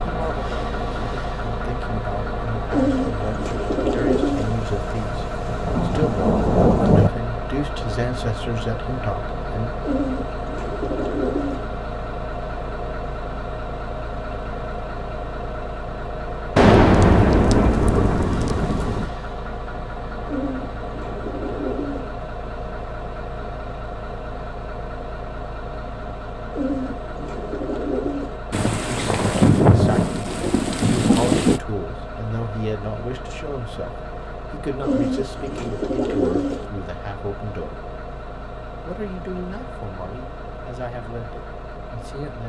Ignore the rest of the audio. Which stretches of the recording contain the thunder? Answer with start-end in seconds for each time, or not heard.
4.3-7.1, 16.6-19.1, 28.5-31.6.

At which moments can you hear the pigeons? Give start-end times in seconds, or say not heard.
2.7-4.5, 9.8-11.7, 20.2-22.1, 26.5-28.4, 34.8-36.6.